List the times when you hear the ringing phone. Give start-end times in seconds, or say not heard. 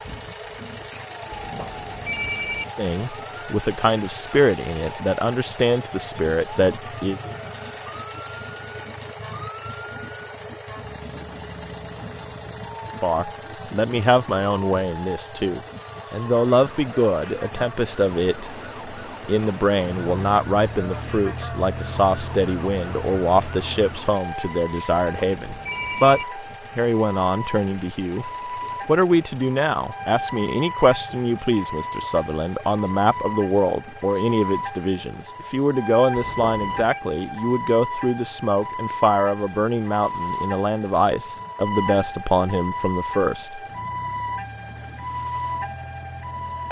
1.3-2.6, 24.9-26.2, 36.1-37.0.